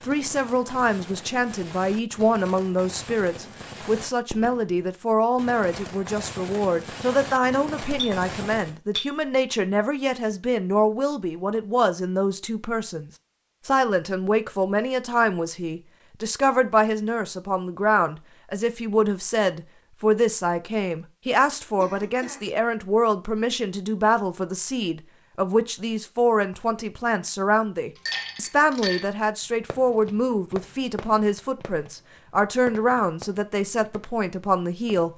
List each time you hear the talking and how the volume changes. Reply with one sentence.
You can hear the talking from 0.0 to 35.1 s, at a steady volume.